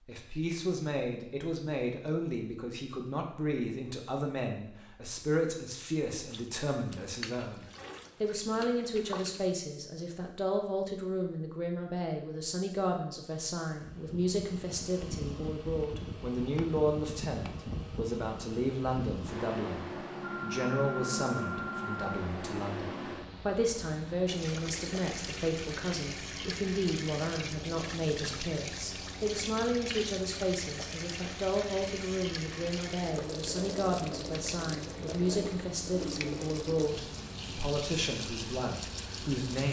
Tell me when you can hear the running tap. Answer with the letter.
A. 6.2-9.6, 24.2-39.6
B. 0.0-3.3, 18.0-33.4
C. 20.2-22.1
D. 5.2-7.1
A.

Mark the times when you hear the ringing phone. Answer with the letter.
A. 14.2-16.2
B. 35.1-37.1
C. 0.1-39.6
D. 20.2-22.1
D.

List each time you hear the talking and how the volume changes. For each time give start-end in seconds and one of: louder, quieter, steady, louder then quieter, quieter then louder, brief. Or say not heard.
0.1-39.6 steady.